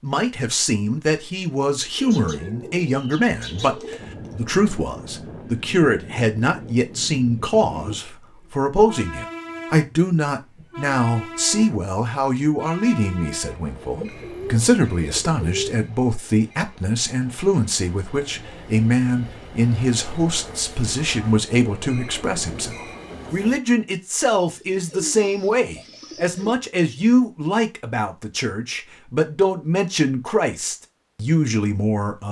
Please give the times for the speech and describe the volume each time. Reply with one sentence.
You can hear the speech from 0.0 to 32.2 s, at a steady volume.